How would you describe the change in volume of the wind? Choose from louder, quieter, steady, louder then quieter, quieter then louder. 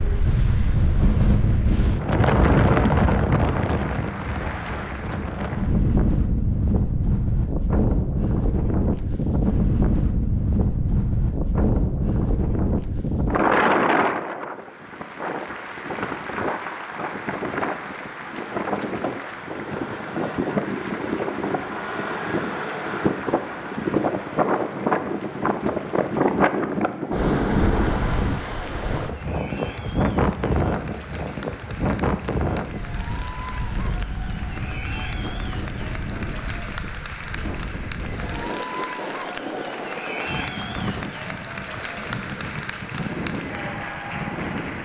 quieter.